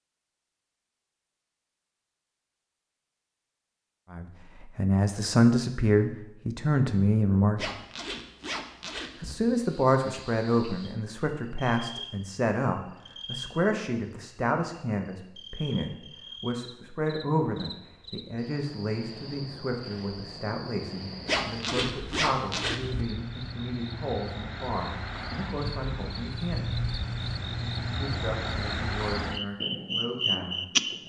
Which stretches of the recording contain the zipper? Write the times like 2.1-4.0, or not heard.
7.5-9.3, 21.2-23.1.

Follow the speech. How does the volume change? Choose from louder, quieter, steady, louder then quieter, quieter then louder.
quieter.